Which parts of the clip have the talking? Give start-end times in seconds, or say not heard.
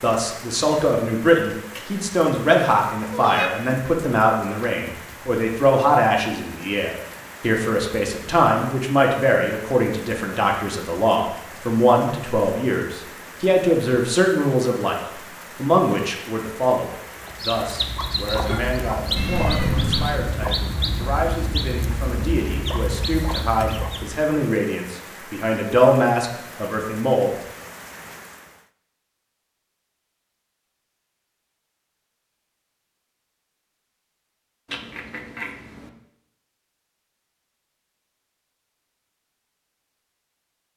0.0-27.3.